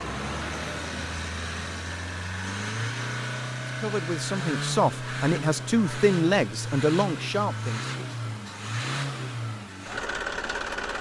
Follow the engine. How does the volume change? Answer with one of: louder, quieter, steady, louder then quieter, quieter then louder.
steady.